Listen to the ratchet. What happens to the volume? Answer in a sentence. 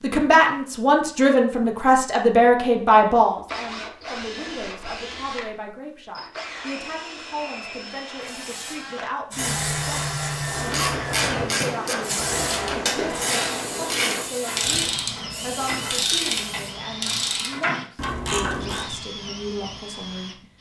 The loudness of the ratchet stays about the same.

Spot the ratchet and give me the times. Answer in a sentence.
The ratchet can be heard from 10.4 to 18.9 s.